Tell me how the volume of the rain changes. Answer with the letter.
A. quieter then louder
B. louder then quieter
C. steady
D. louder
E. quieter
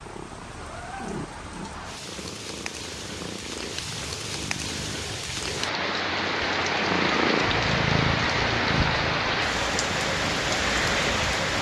D.